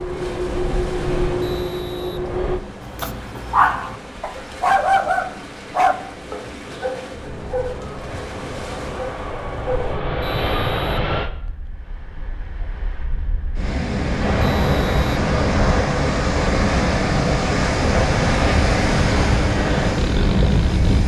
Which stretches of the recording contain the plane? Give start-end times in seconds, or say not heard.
0.0-2.6, 7.1-11.3, 14.2-21.0.